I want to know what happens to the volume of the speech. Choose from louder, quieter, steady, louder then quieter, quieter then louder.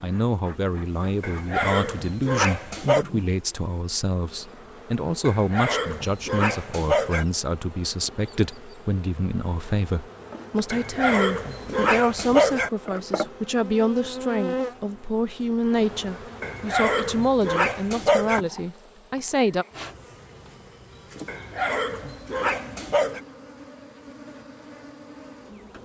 steady.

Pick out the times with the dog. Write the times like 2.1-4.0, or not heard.
1.2-3.0, 5.2-7.2, 10.7-12.7, 16.4-18.4, 21.2-23.2.